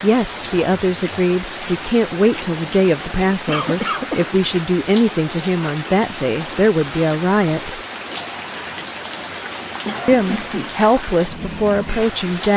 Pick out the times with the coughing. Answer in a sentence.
The coughing can be heard from 3.5 to 4.3 s and from 9.8 to 10.8 s.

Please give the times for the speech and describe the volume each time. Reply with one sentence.
The speech can be heard from 0.0 to 7.8 s, at a steady volume; and briefly from 10.1 to 12.5 s.